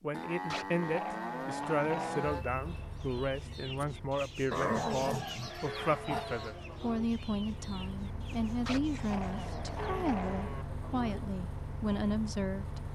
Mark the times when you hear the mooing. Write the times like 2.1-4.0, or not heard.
0.1-2.5, 5.6-7.0, 9.8-11.2.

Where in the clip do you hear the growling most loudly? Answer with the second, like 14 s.
5 s.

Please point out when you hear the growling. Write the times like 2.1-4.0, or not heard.
0.5-2.4, 4.5-6.3, 8.7-10.6.